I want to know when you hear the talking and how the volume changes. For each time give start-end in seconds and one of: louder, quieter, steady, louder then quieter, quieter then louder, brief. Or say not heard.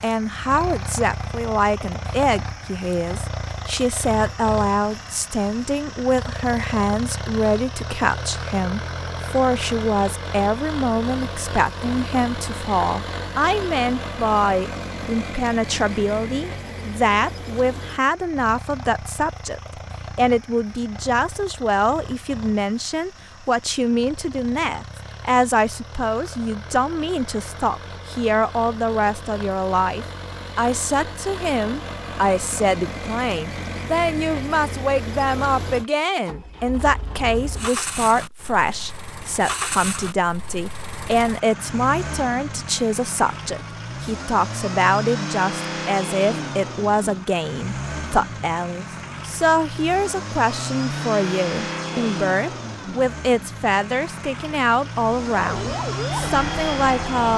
0.0-57.3 steady.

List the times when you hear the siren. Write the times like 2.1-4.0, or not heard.
55.4-57.2.